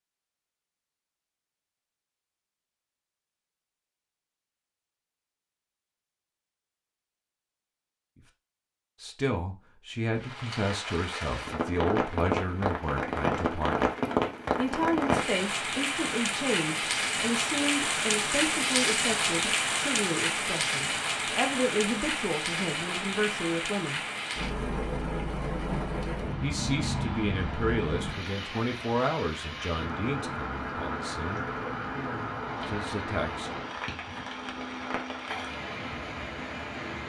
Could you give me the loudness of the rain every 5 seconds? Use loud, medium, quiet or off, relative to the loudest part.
off, off, loud, loud, loud, medium, medium, medium.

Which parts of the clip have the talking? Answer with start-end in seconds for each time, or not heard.
9.0-13.9, 14.6-24.0, 26.4-31.4, 32.6-33.5.